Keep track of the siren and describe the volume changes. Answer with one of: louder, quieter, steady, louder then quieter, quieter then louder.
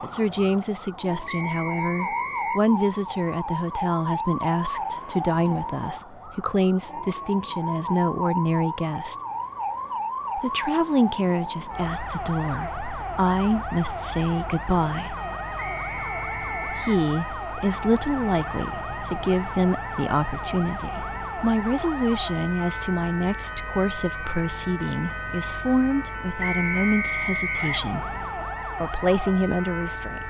steady.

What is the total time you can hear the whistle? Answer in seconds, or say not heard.
4 s.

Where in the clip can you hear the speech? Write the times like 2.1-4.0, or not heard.
0.0-9.2, 10.3-15.2, 16.6-28.1, 28.8-30.2.